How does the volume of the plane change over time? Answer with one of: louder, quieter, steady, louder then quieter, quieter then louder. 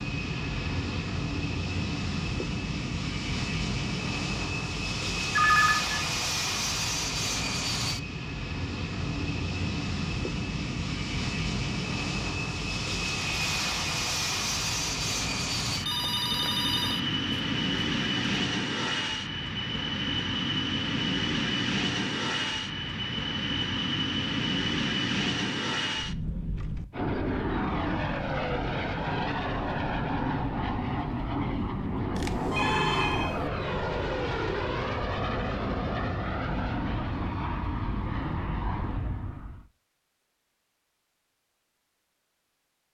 steady.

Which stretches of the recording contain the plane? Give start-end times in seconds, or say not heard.
0.0-39.6.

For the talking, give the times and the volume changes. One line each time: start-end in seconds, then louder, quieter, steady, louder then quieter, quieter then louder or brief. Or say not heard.
not heard.